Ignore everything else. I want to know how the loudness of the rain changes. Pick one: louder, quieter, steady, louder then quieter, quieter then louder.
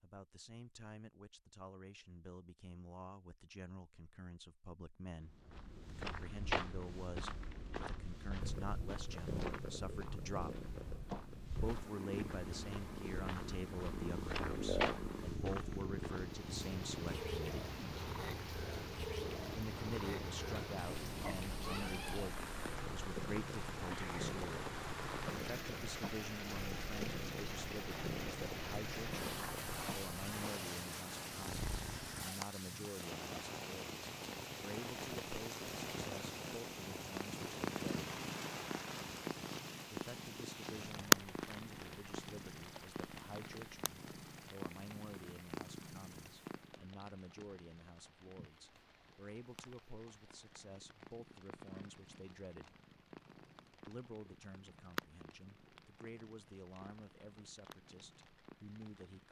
quieter.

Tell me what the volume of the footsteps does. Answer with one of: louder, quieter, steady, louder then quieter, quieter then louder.
quieter then louder.